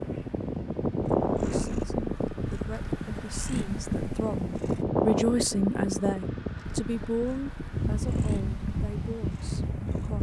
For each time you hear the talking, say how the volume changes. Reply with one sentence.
The talking can be heard from 1.5 to 10.1 s, getting louder then quieter.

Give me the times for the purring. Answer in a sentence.
You can hear the purring from 0.0 to 4.8 s and from 6.8 to 10.1 s.